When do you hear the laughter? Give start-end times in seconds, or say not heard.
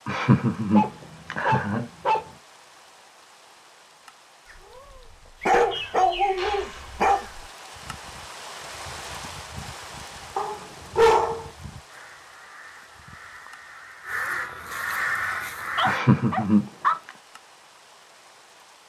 0.1-1.9, 15.8-17.1.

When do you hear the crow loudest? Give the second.
15 s.